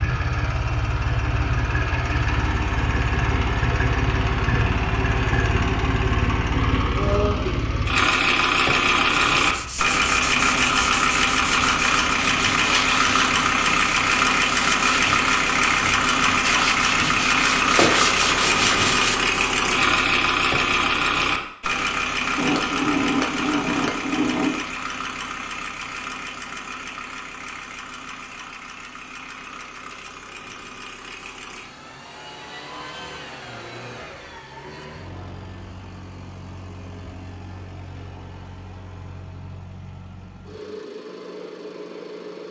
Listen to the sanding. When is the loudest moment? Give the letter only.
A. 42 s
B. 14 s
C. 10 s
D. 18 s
D.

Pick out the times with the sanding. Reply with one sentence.
The sanding can be heard from 9.2 to 19.2 s.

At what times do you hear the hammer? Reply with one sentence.
You can hear the hammer from 22.4 to 24.6 s.